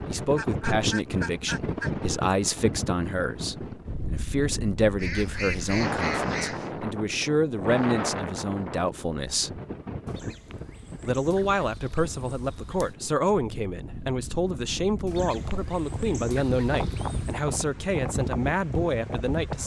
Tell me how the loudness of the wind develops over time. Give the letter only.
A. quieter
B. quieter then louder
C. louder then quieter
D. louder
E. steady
B.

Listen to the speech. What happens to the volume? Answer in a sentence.
The loudness of the speech stays about the same.